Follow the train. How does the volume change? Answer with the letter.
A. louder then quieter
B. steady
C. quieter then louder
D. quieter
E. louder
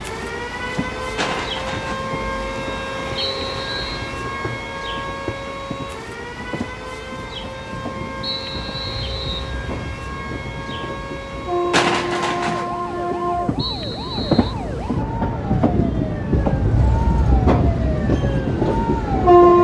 E.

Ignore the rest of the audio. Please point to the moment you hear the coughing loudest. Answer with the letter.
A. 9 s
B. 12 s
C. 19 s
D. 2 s
B.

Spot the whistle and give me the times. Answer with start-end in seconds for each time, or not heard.
3.1-4.1, 8.2-9.5, 13.6-14.6.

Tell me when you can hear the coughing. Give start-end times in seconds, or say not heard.
1.1-2.0, 11.7-12.7.